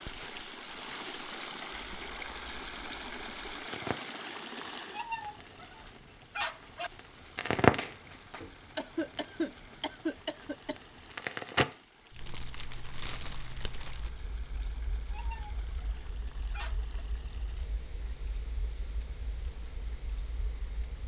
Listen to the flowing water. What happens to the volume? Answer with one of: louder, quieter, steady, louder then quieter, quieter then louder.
quieter.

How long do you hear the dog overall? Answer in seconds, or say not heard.
4 s.